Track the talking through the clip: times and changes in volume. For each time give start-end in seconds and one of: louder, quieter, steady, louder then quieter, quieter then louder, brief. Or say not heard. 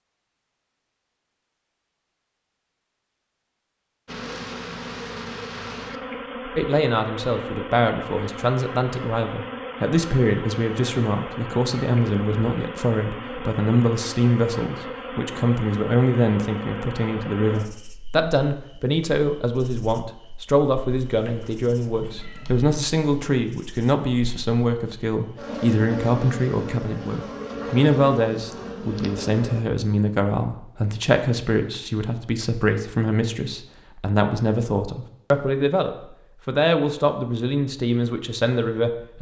6.5-39.1 steady.